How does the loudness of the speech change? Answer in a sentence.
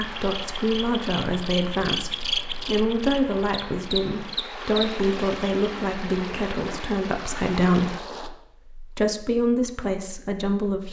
The volume of the speech stays about the same.